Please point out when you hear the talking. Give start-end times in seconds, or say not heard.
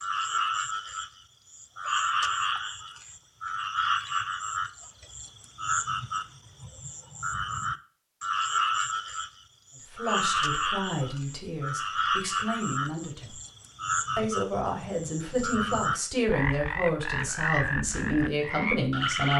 9.9-13.3, 14.2-19.3.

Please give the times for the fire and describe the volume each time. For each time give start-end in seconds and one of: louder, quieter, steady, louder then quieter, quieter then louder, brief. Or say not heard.
not heard.